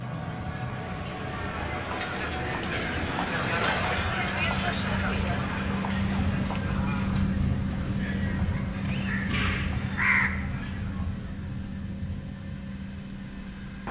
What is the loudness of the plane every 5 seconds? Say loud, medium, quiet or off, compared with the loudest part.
medium, loud, medium.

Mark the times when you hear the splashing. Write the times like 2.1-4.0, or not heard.
not heard.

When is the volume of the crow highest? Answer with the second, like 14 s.
10 s.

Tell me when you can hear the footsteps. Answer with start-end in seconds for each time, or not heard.
not heard.